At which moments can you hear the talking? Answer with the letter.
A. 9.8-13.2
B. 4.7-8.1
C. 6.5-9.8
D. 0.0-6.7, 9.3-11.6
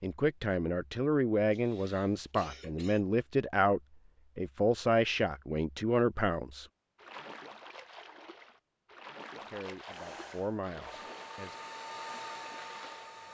D.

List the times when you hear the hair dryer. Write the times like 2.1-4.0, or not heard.
9.8-13.2.